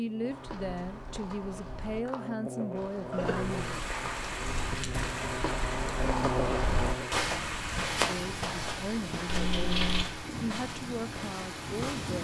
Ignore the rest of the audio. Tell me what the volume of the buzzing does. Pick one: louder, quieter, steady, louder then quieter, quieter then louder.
louder.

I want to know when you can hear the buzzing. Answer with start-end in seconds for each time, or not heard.
0.0-7.2.